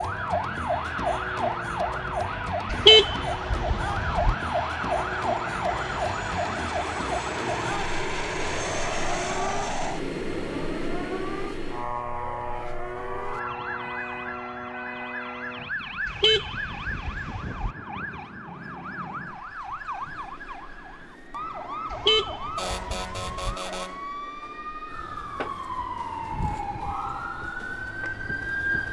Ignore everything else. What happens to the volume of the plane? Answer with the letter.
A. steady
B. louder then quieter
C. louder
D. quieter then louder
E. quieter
B.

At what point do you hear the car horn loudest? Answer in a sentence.
The volume of the car horn peaks at 3 seconds.